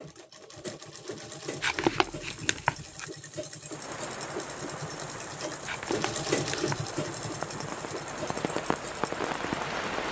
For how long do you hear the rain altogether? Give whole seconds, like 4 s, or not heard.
6 s.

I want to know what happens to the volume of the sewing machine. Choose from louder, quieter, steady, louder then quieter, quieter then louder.
louder then quieter.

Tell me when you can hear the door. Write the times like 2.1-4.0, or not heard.
not heard.